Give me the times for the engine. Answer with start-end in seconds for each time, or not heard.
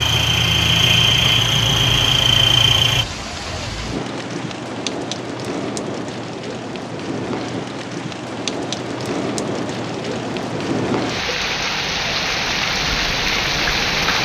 0.0-3.0.